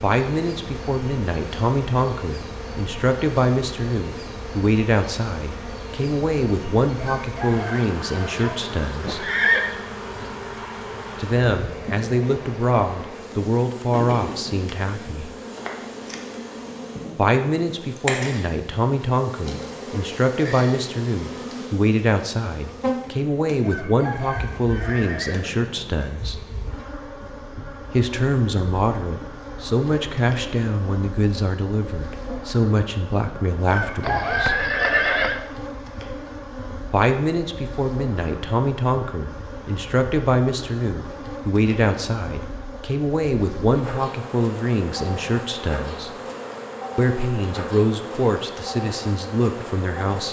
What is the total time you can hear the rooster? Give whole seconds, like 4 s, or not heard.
5 s.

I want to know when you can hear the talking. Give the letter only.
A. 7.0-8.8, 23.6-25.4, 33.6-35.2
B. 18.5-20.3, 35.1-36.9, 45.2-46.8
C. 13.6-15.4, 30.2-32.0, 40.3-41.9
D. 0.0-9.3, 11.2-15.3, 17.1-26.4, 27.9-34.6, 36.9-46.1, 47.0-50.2
D.